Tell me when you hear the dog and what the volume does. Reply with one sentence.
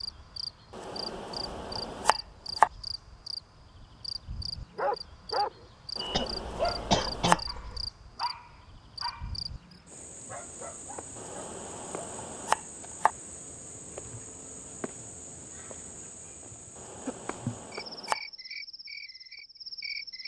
The dog can be heard from 4.8 to 12.1 s, getting quieter.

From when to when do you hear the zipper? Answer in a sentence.
The zipper can't be heard in this clip.